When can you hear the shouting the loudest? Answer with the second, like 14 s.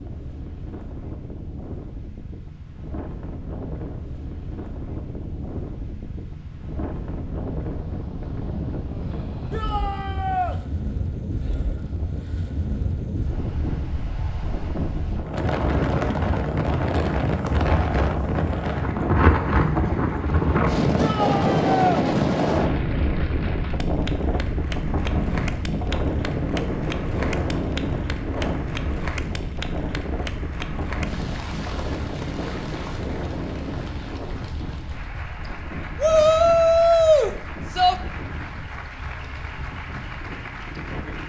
37 s.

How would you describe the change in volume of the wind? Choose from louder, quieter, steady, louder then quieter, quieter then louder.
louder then quieter.